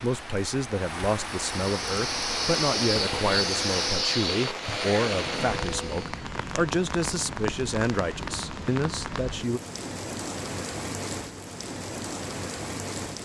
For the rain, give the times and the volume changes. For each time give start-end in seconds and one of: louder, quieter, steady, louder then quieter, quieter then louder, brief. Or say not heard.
0.0-13.2 steady.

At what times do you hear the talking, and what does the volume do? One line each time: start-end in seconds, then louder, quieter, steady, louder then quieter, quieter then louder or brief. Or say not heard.
0.0-9.6 steady.